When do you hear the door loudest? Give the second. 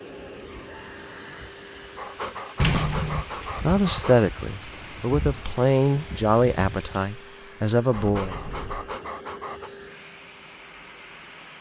3 s.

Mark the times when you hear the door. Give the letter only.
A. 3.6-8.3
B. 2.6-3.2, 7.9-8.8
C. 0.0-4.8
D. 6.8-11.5
B.